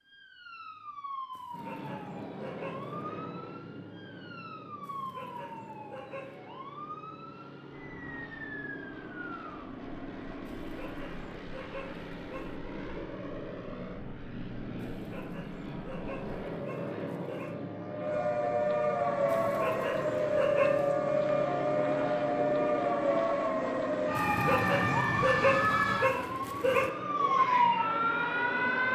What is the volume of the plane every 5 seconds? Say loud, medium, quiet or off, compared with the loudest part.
medium, medium, medium, loud, loud, loud.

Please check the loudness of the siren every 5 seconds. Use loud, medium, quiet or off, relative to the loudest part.
quiet, quiet, quiet, loud, loud, loud.